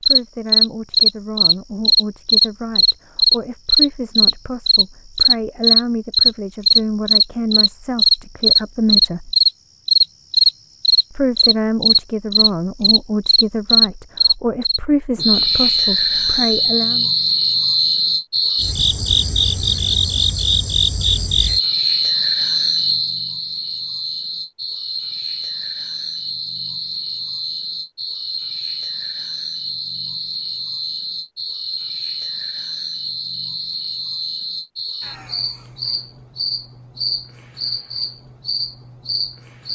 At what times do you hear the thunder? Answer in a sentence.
The thunder can't be heard in this clip.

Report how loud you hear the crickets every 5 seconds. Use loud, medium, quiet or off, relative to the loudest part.
loud, loud, loud, medium, medium, quiet, quiet, quiet.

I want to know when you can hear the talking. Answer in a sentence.
The talking can be heard from 0.0 to 9.3 s and from 11.1 to 17.1 s.